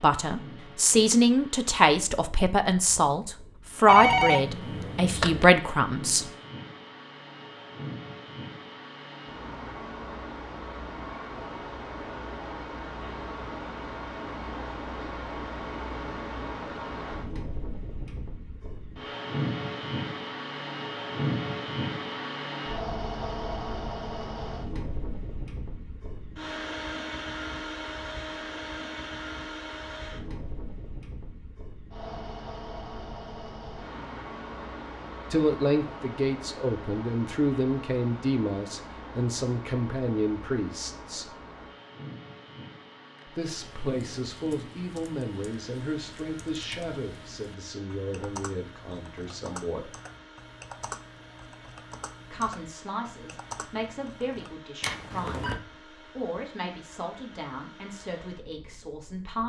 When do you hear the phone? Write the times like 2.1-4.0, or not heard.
3.9-5.5, 54.8-55.6.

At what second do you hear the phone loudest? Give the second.
4 s.